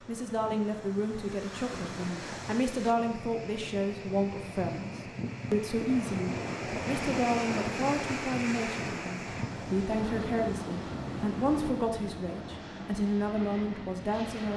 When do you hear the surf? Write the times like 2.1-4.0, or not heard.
0.0-11.7.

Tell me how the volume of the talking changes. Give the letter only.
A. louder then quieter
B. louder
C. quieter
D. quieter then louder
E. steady
E.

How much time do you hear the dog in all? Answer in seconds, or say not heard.
not heard.